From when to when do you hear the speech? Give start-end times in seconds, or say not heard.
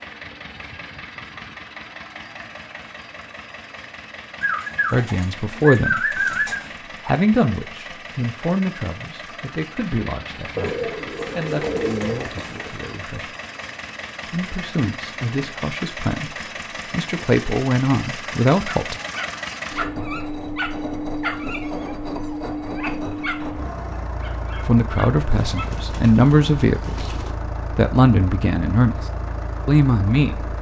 4.9-13.3, 14.2-18.9, 24.6-26.9, 27.8-29.1, 29.6-30.5.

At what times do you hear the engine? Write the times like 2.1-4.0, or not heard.
0.0-30.5.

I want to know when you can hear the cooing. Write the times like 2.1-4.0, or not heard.
4.4-6.7, 10.6-12.7, 25.3-27.4.